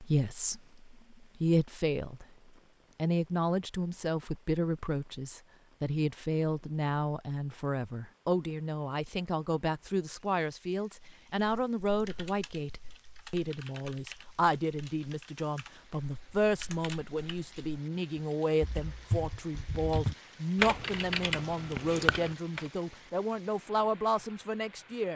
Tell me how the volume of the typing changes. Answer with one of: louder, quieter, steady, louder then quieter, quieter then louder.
louder.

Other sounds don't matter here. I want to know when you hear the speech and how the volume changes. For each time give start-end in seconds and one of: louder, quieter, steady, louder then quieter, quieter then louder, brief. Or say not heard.
0.0-2.2 brief
3.0-25.1 steady.